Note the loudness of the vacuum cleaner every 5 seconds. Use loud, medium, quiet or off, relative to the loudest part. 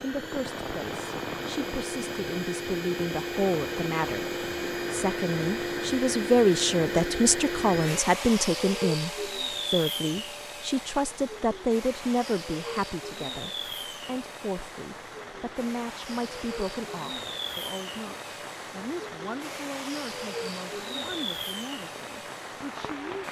loud, loud, medium, medium, medium.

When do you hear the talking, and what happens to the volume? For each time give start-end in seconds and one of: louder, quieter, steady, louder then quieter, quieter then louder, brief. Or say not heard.
0.0-4.2 louder
4.9-23.1 quieter.